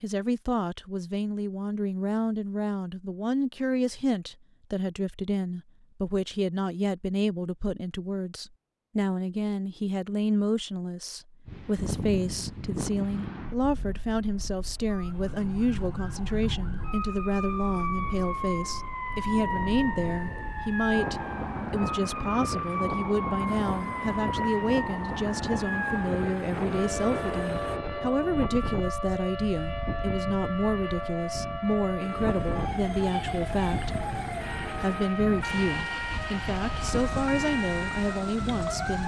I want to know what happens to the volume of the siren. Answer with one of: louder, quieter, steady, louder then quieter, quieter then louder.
steady.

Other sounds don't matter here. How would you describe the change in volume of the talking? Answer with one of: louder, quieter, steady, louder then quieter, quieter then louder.
steady.